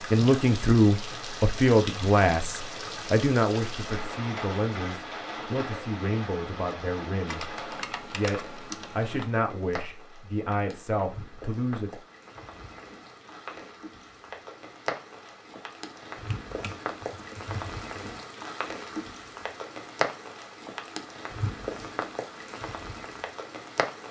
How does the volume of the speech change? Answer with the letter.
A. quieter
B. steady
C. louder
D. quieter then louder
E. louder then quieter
A.